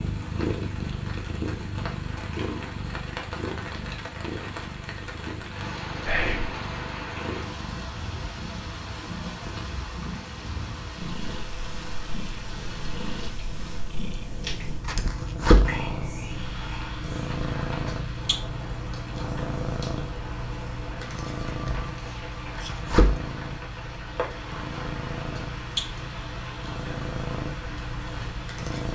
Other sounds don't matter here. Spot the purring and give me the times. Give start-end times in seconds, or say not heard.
0.0-28.9.